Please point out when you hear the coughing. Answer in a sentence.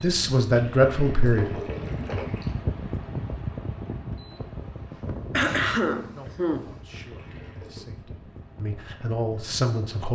The coughing can be heard from 5.3 to 6.8 s.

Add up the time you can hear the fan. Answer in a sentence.
The fan can be heard for 10 seconds in total.